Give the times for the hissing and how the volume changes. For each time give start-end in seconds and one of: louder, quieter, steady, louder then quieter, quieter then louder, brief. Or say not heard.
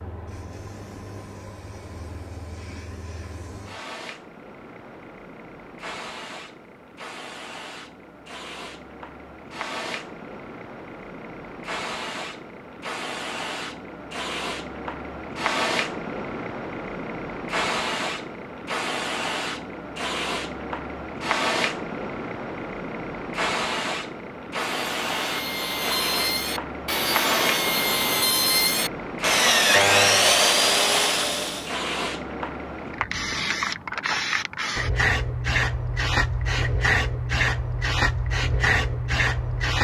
0.0-39.7 louder.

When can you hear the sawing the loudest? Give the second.
30 s.